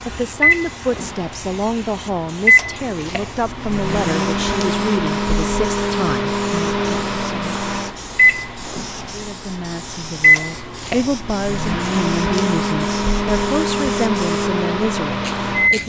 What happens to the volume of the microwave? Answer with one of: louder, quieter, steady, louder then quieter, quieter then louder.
steady.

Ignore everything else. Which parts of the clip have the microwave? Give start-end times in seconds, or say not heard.
0.0-15.8.